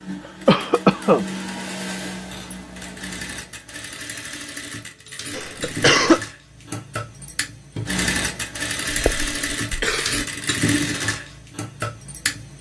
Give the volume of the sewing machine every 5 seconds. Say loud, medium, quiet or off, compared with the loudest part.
medium, loud, loud.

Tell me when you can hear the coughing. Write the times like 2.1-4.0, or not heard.
0.5-1.2, 5.3-6.2, 8.9-10.2.